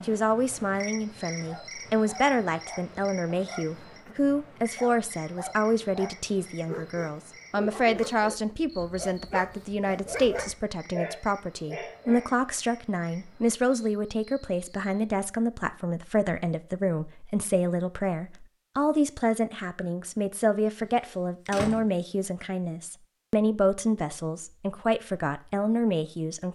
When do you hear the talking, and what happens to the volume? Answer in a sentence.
You can hear the talking from 0.0 to 26.5 s, at a steady volume.